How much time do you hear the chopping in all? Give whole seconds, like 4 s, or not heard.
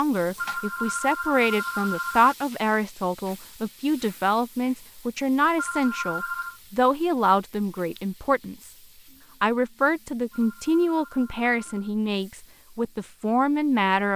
not heard.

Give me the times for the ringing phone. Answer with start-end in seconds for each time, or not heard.
0.3-2.4, 5.5-6.6, 10.3-11.9.